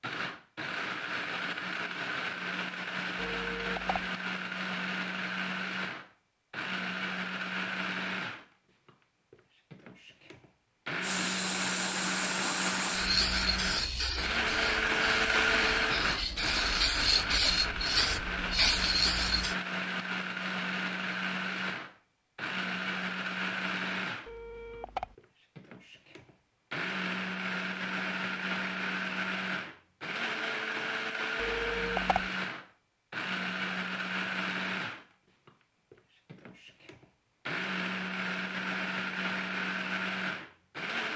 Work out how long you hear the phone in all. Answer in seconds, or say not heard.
3 s.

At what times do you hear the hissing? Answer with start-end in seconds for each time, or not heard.
11.0-19.6.